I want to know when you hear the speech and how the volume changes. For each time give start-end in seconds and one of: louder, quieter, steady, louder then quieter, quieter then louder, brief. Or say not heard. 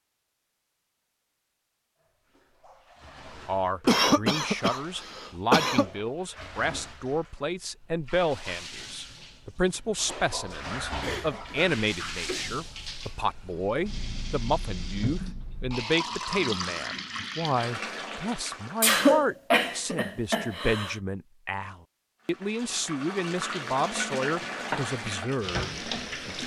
3.5-26.4 steady.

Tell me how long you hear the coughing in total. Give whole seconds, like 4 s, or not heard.
6 s.